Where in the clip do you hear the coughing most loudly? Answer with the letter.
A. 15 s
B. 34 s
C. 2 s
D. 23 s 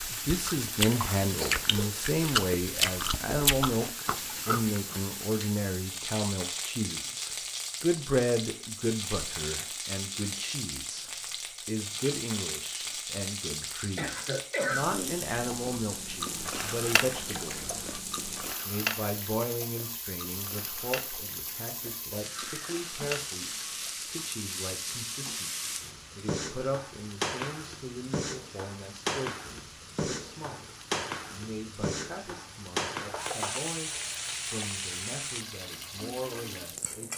A.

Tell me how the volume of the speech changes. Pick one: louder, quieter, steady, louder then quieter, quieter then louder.
quieter.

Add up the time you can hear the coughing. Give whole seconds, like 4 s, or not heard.
3 s.